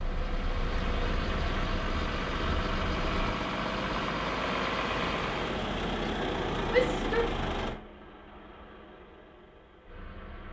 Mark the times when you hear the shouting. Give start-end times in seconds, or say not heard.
6.7-7.3.